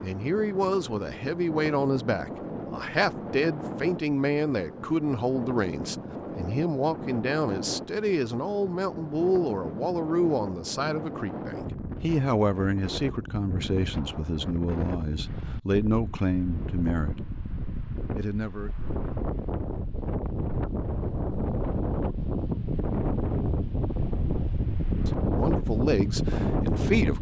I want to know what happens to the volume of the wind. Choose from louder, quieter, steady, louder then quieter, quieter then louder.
louder.